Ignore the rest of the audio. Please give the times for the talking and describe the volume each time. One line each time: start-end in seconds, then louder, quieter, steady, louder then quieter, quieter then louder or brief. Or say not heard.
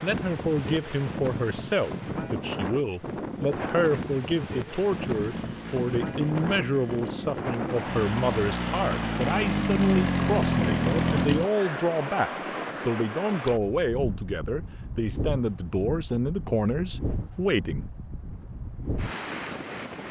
0.0-17.9 steady.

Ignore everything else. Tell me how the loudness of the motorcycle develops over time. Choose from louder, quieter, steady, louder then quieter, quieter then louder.
louder.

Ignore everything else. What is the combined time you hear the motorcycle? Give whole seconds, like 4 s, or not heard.
6 s.